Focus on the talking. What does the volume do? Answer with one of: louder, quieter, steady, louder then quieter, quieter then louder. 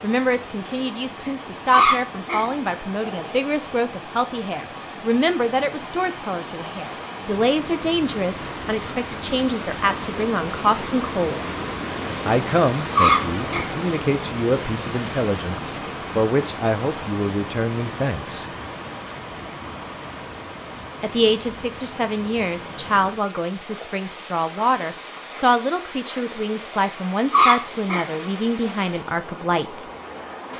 steady.